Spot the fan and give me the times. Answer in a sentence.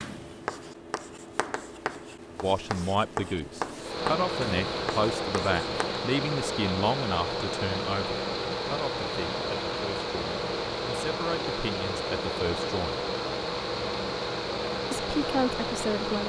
The fan can be heard from 3.8 to 16.2 s.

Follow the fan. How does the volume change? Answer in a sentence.
The volume of the fan stays about the same.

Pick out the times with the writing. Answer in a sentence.
You can hear the writing from 0.0 to 6.0 s.